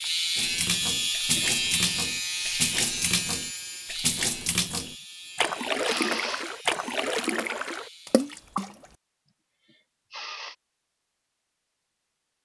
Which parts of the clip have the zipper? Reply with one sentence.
You can't hear the zipper here.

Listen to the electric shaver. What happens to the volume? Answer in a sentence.
The volume of the electric shaver goes down.